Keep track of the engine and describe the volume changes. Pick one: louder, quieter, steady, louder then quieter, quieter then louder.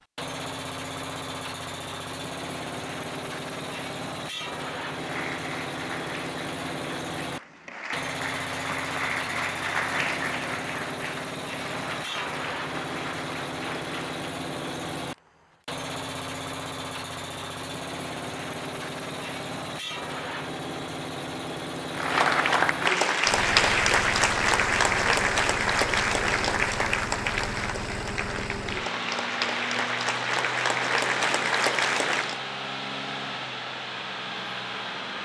steady.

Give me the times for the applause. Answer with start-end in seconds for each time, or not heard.
4.9-14.3, 21.9-32.4.